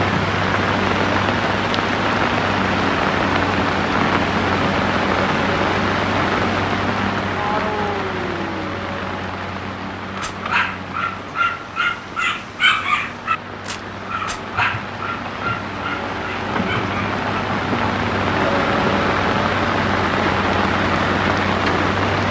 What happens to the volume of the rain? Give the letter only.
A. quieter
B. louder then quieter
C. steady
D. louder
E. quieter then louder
E.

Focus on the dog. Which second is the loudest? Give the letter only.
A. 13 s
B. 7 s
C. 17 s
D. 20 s
A.